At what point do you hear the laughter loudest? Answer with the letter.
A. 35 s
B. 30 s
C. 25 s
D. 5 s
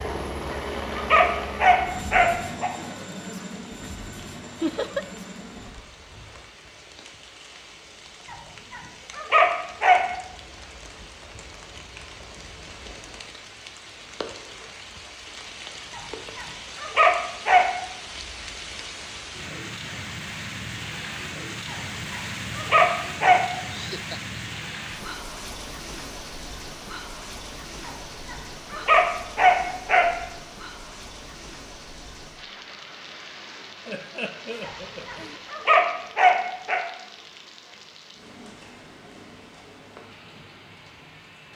D.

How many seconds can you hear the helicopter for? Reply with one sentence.
You can hear the helicopter for 6 seconds altogether.